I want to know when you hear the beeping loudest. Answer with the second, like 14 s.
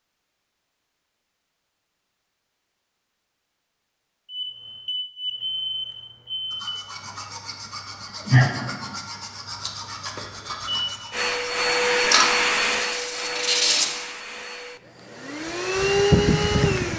6 s.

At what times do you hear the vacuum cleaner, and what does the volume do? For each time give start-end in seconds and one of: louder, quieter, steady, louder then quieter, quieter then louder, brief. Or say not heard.
11.1-16.9 quieter then louder.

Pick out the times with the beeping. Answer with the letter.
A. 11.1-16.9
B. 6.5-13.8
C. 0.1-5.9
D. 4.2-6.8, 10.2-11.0
D.